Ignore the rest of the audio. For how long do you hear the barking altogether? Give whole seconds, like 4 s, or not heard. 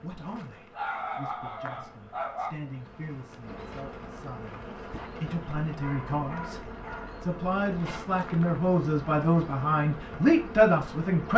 3 s.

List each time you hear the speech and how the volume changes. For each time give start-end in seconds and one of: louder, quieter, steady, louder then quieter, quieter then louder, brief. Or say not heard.
0.0-11.3 louder.